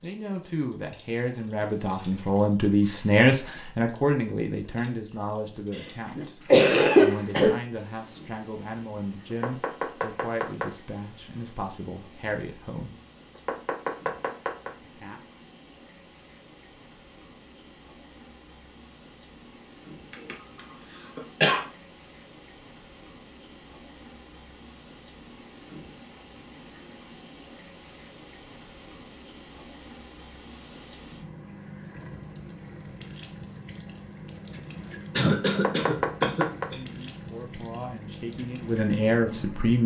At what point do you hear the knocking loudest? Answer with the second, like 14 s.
36 s.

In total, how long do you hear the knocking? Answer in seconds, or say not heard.
4 s.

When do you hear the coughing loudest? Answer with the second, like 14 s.
7 s.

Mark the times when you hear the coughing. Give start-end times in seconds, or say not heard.
6.2-7.5, 20.1-21.6, 35.1-36.8.